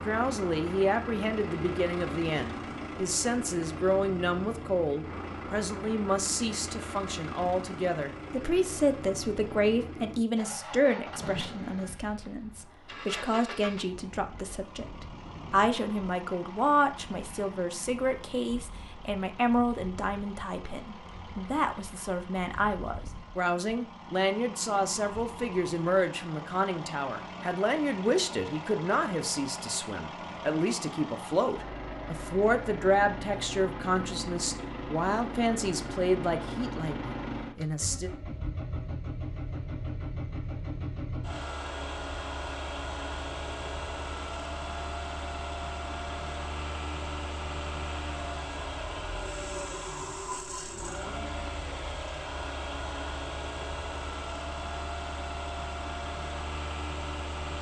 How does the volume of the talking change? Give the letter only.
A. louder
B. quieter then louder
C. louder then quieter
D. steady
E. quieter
D.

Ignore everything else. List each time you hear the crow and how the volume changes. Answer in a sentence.
The crow can't be heard in this clip.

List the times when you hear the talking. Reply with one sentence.
The talking can be heard from 0.1 to 38.1 s.